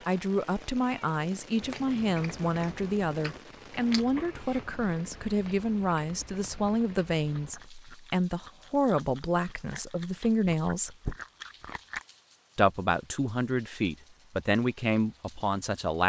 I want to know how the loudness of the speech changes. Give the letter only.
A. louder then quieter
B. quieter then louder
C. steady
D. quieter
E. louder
C.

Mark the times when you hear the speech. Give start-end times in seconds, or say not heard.
0.1-10.9, 12.6-16.0.